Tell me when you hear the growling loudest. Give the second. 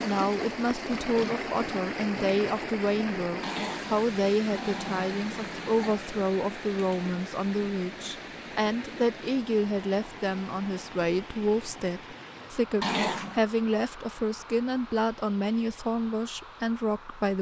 13 s.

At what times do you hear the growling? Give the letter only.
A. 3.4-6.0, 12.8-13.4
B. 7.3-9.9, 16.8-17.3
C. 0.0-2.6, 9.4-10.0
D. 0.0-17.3
A.